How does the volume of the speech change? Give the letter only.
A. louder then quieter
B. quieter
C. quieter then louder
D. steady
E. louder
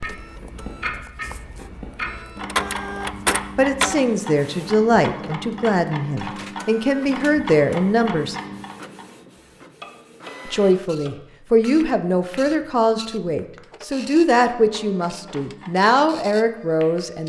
D.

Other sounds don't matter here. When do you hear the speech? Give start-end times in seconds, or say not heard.
3.5-8.3, 10.4-17.2.